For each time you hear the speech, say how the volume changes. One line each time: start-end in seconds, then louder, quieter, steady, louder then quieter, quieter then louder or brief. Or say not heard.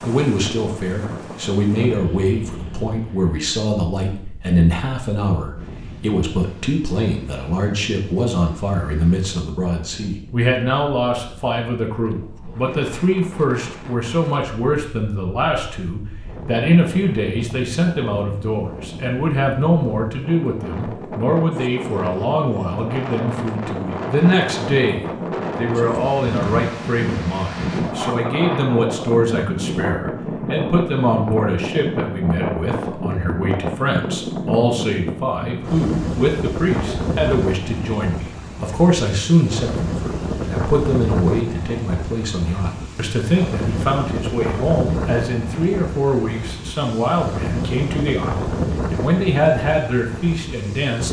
0.0-51.0 steady.